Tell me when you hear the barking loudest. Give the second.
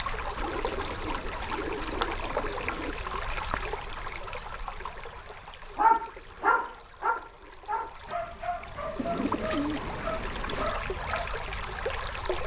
6 s.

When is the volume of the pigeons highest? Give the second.
10 s.